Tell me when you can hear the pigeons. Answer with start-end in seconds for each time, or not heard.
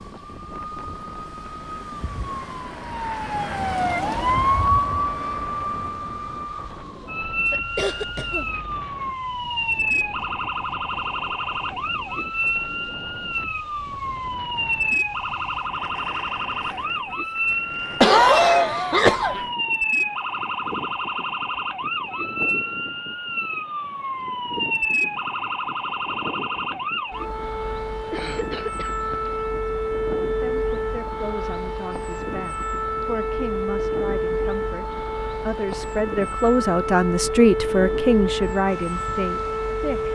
not heard.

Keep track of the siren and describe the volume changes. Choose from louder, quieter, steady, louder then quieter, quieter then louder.
steady.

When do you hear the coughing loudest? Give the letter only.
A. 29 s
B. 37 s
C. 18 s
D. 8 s
C.